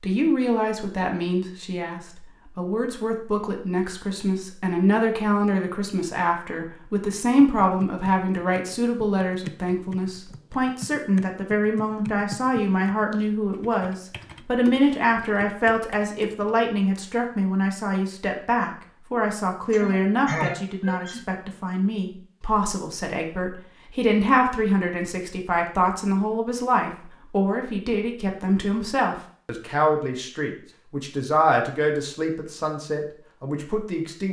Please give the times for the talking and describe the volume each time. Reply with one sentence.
The talking can be heard from 0.0 to 34.2 s, at a steady volume.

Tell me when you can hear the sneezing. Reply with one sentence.
The sneezing can be heard from 19.7 to 21.2 s.